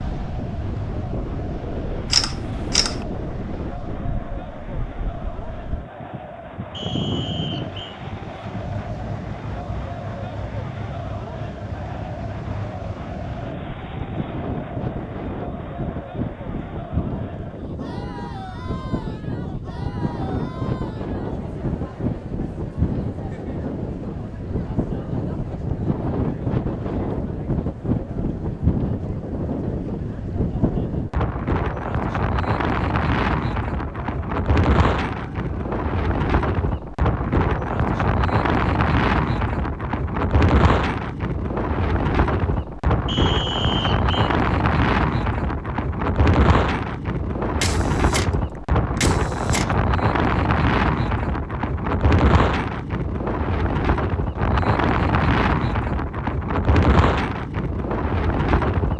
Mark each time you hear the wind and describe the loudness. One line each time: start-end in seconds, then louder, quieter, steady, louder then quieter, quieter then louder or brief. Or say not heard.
0.0-58.9 louder.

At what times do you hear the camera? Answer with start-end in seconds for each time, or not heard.
2.1-3.0, 47.6-48.3, 49.0-49.6.